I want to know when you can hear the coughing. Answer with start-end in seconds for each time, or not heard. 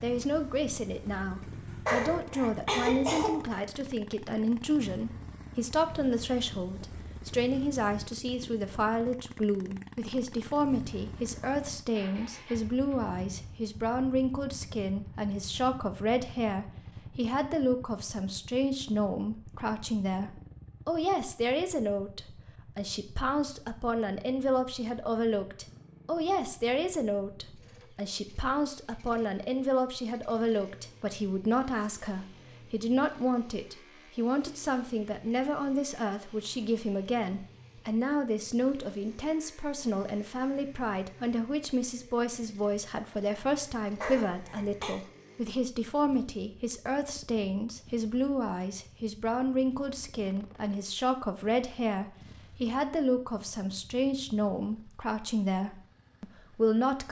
1.9-3.6, 44.0-45.0.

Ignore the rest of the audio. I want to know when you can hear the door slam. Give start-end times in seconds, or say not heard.
not heard.